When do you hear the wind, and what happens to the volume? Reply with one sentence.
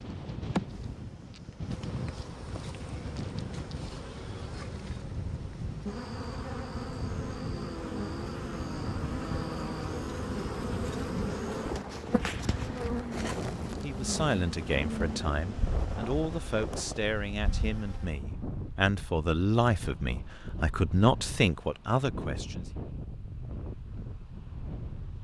You can hear the wind from 0.0 to 25.1 s, at a steady volume.